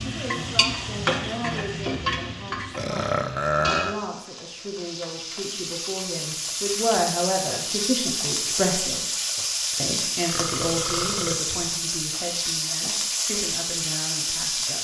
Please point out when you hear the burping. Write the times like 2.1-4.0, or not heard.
2.8-4.0, 9.3-11.3.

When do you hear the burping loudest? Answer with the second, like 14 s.
4 s.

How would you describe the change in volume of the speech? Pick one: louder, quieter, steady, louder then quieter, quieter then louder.
louder then quieter.